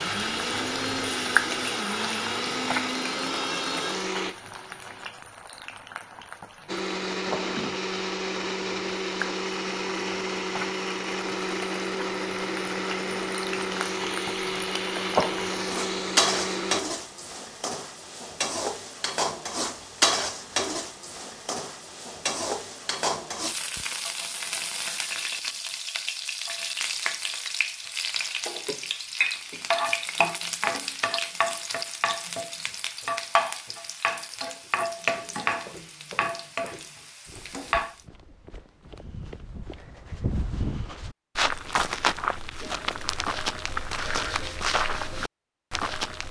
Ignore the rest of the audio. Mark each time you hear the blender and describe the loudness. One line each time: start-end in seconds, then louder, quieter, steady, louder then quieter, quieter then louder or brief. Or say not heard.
0.0-5.1 steady
6.7-16.8 steady.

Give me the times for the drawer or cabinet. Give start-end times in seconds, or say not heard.
7.2-7.8.